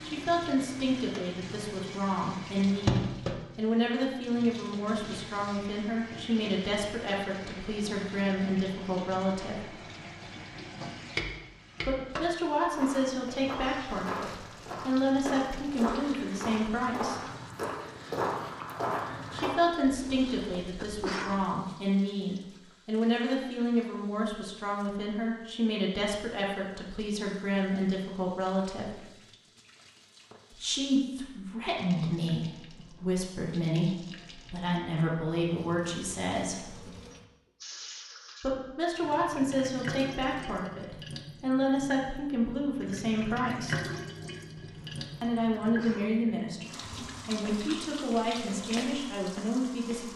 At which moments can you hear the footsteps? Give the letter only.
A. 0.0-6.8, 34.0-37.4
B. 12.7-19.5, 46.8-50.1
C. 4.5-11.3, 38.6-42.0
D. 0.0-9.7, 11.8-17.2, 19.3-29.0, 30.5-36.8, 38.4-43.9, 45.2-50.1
B.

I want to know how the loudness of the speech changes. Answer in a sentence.
The volume of the speech stays about the same.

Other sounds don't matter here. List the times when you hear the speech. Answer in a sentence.
The speech can be heard from 0.0 to 9.7 s, from 11.8 to 17.2 s, from 19.3 to 29.0 s, from 30.5 to 36.8 s, from 38.4 to 43.9 s and from 45.2 to 50.1 s.